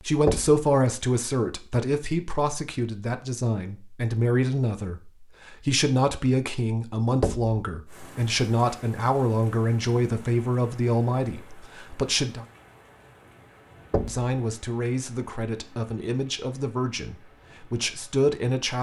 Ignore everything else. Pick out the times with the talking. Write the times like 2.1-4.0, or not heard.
0.0-12.4, 14.1-18.7.